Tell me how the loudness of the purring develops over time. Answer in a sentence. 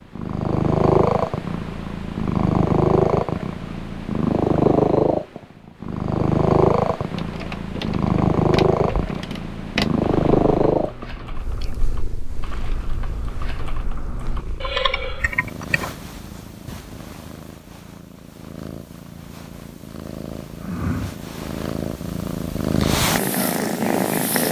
The volume of the purring goes down, then up.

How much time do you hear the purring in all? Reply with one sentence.
The purring can be heard for 24 seconds in total.